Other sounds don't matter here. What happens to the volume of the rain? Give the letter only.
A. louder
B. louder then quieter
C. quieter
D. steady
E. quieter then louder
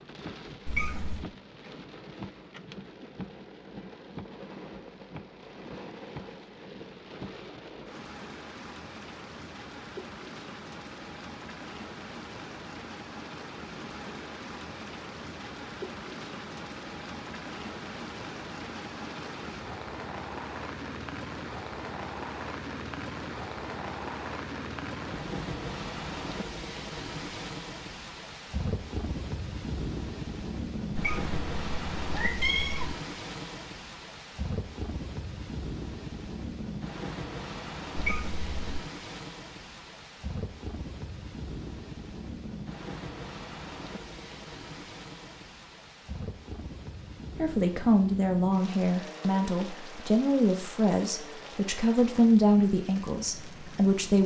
B.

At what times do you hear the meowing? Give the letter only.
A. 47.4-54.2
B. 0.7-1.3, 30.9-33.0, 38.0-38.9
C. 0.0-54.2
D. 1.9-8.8
B.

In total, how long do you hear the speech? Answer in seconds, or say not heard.
7 s.